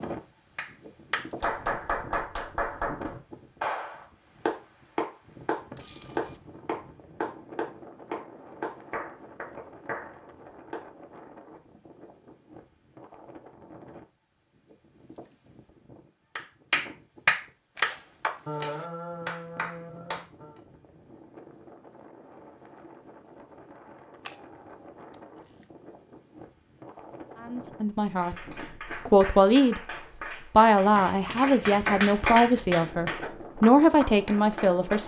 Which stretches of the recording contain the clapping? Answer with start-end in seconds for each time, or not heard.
0.6-10.8, 16.4-20.6, 28.1-35.0.